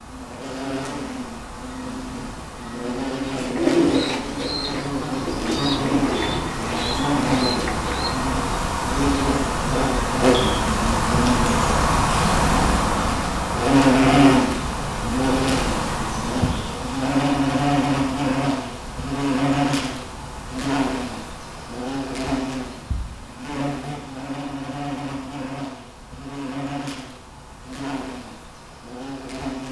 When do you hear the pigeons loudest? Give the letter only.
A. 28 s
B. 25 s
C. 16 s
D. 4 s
D.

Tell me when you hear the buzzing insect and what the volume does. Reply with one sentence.
The buzzing insect can be heard from 0.0 to 29.6 s, getting louder then quieter.